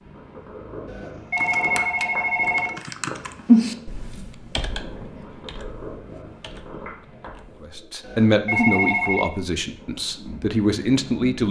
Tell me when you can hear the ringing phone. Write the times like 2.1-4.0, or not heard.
0.8-2.8, 8.0-9.3.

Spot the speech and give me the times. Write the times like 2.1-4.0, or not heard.
7.6-11.4.